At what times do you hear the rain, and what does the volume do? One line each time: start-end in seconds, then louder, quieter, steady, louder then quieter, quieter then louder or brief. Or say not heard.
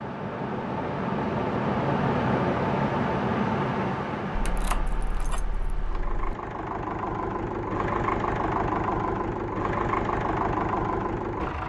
not heard.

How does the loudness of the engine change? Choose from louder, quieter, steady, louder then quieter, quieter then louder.
quieter then louder.